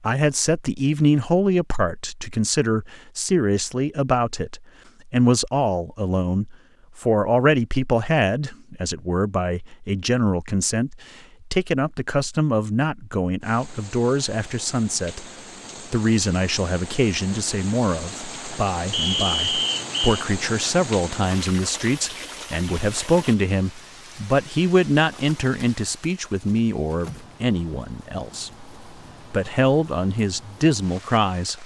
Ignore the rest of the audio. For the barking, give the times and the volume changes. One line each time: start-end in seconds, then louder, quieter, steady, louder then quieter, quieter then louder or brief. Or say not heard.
not heard.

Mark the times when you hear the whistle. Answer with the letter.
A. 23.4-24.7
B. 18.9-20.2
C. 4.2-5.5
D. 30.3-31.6
B.